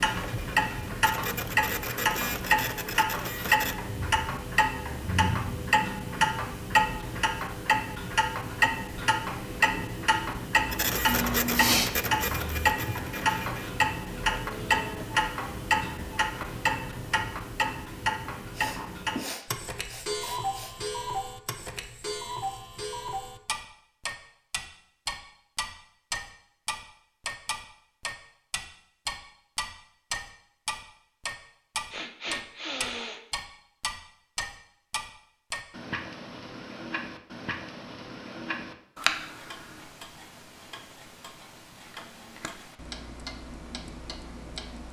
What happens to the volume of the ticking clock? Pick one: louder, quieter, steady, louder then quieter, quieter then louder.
quieter.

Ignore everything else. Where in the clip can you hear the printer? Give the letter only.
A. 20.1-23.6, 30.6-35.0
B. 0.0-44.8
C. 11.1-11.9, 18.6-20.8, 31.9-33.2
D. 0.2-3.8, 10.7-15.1
D.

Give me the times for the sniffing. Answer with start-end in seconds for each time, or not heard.
11.1-11.9, 18.6-20.8, 31.9-33.2.